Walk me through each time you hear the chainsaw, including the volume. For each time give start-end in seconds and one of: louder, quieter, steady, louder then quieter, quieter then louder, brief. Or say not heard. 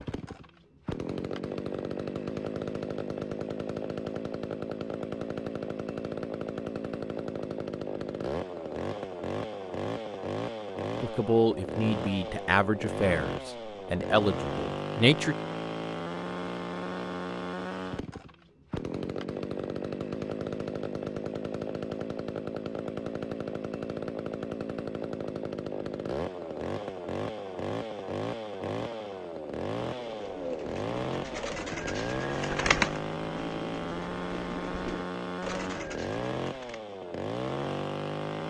0.0-38.4 steady.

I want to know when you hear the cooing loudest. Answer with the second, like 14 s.
33 s.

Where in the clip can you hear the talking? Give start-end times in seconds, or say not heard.
11.0-15.3.